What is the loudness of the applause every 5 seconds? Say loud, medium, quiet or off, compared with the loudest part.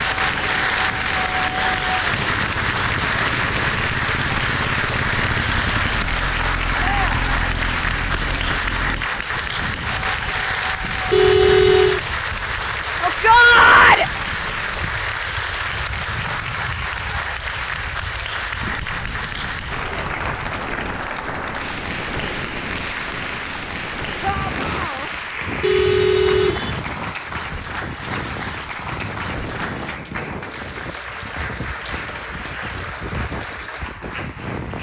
loud, loud, loud, medium, medium, medium, medium.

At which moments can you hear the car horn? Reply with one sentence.
The car horn can be heard from 11.1 to 12.0 s and from 25.6 to 26.8 s.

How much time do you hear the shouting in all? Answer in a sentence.
The shouting can be heard for 2 seconds in total.